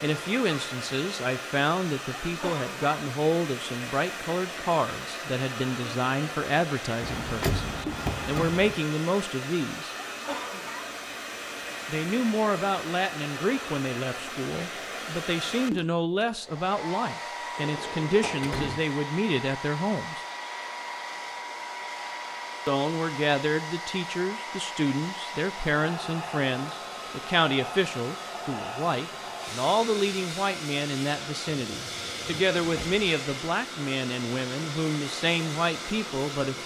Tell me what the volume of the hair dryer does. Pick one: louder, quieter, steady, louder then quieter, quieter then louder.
steady.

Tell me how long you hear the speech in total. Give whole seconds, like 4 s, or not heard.
32 s.